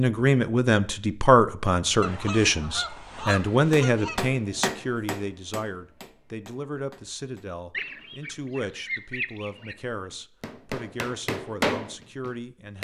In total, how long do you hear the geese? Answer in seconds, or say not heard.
4 s.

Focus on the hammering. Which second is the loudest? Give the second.
12 s.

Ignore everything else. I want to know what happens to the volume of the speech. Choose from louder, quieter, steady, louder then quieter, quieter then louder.
quieter.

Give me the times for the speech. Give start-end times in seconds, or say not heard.
0.0-12.7.